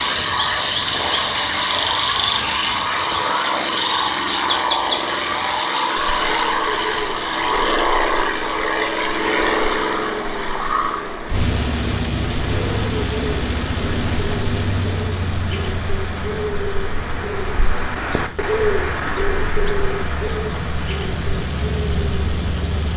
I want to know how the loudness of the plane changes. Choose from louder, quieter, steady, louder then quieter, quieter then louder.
quieter.